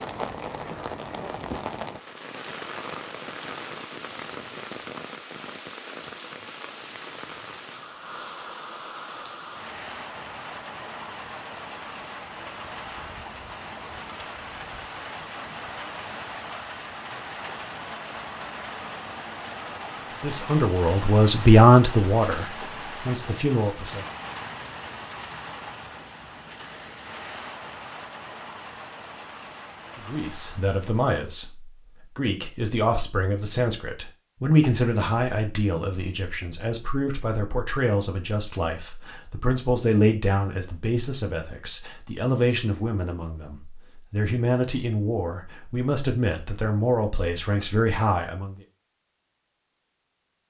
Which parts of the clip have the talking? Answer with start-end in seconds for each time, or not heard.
20.2-24.1, 29.9-48.6.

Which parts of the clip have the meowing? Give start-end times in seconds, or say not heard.
not heard.